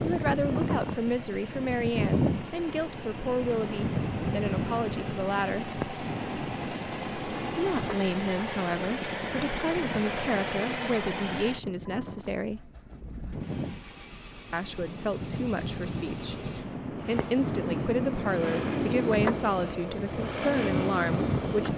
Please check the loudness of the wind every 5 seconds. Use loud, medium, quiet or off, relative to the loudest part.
loud, medium, medium, loud, loud.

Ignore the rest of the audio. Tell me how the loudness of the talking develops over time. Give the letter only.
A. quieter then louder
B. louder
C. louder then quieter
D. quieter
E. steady
E.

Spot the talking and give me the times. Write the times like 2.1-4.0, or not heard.
0.0-5.7, 7.5-12.7, 14.5-21.7.